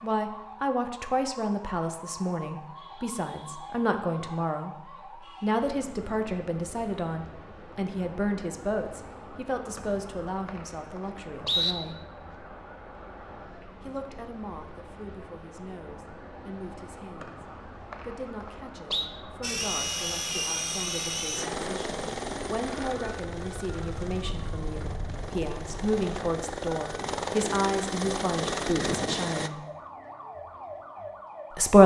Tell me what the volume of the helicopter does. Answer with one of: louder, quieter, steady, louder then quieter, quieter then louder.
quieter then louder.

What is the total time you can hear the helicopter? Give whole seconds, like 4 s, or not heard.
10 s.